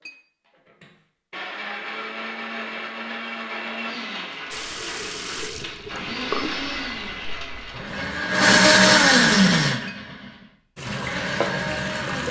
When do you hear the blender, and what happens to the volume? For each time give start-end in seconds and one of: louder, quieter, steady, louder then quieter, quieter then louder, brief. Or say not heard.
0.0-12.2 louder then quieter.